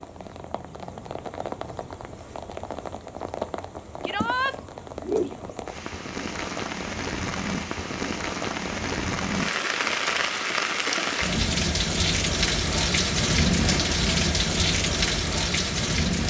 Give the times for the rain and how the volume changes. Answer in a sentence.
You can hear the rain from 0.0 to 16.2 s, getting louder.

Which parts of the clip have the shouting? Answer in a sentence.
The shouting can be heard from 4.0 to 4.5 s.